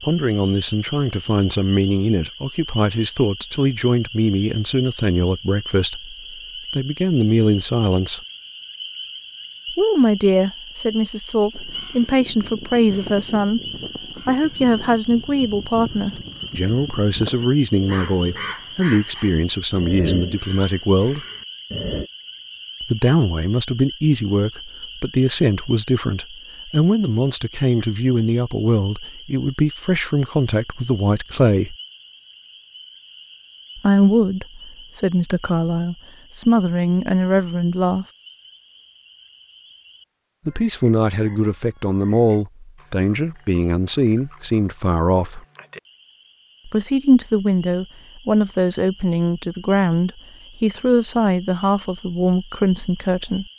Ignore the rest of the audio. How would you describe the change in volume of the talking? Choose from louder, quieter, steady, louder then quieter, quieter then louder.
steady.